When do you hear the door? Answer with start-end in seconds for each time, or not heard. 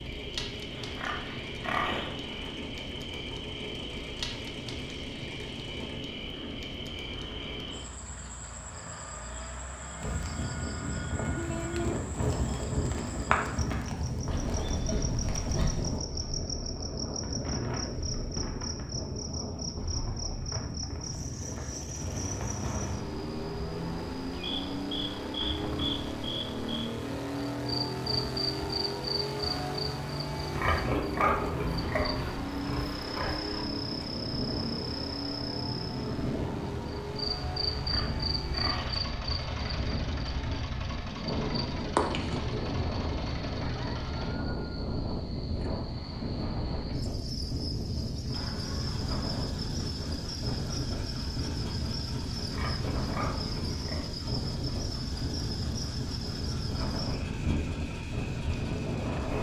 not heard.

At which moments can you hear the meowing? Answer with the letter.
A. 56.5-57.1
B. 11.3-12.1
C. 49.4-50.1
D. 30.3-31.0
B.